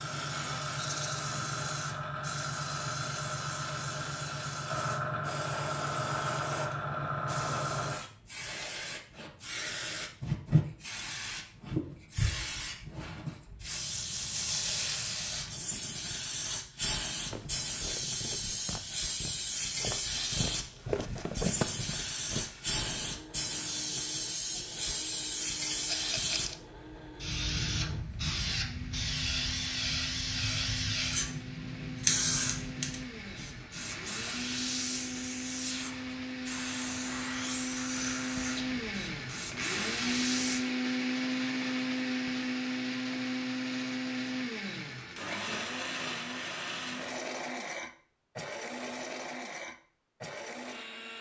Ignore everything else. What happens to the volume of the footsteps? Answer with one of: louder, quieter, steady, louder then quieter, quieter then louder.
louder then quieter.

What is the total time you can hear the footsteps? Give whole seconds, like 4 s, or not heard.
6 s.